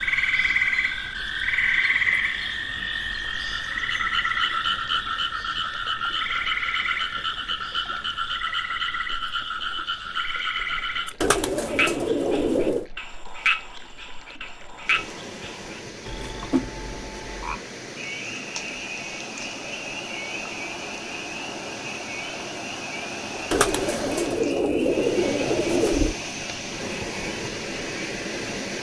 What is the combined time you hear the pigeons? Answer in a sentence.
The pigeons can be heard for 4 seconds in total.